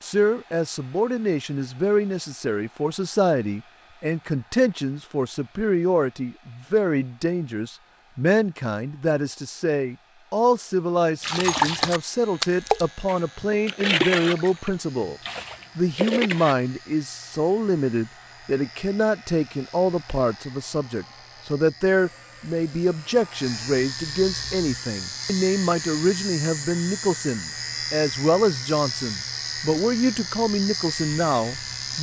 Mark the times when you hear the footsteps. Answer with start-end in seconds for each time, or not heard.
not heard.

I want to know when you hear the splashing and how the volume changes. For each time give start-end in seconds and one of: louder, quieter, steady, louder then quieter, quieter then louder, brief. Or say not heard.
11.2-16.6 quieter then louder.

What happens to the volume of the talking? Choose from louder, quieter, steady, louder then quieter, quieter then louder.
steady.